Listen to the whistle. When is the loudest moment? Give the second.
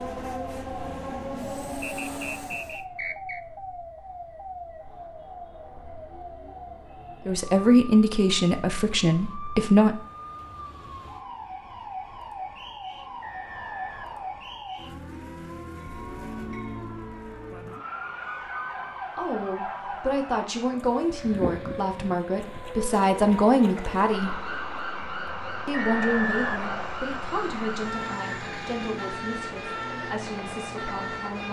26 s.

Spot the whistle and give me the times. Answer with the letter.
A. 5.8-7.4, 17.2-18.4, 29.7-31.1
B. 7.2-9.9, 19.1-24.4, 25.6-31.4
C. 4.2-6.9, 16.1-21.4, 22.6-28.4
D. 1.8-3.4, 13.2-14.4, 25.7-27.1
D.